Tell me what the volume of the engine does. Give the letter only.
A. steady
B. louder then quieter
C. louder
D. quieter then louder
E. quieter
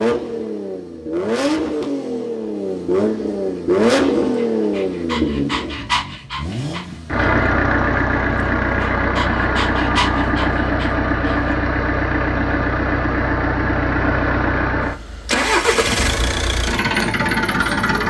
A.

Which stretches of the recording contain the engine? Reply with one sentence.
You can hear the engine from 0.0 to 18.0 s.